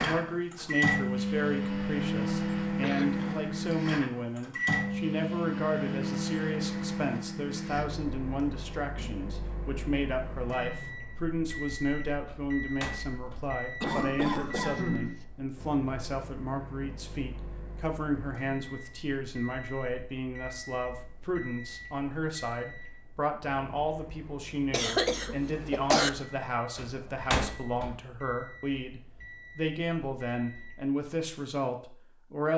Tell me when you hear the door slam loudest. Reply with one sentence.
The volume of the door slam peaks at 27 seconds.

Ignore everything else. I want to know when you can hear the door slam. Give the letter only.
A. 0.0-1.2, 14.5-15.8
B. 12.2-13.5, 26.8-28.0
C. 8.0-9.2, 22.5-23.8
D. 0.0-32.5
B.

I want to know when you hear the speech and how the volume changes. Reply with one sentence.
The speech can be heard from 0.0 to 32.5 s, at a steady volume.